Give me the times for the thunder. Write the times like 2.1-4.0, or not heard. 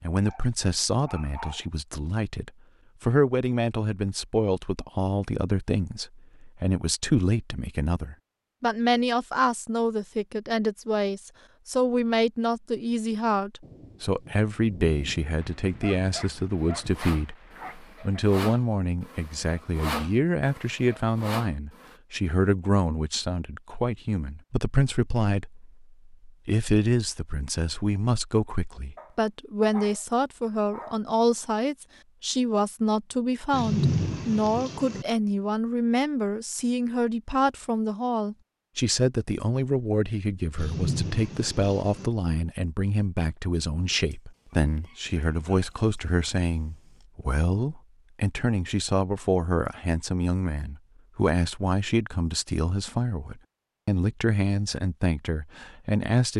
13.6-17.0, 33.5-35.0, 40.5-42.1.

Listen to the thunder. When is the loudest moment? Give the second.
34 s.